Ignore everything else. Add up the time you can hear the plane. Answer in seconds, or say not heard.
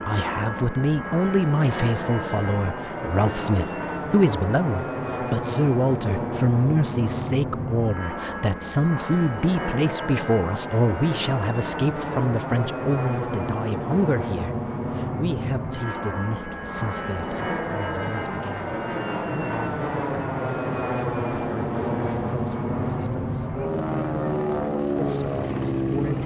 26 s.